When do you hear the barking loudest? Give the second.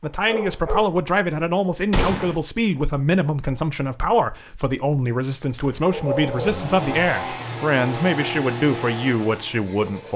6 s.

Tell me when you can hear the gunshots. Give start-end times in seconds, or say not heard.
1.9-2.4.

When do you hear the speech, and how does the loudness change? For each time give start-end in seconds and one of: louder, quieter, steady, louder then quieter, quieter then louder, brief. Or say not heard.
0.0-10.1 steady.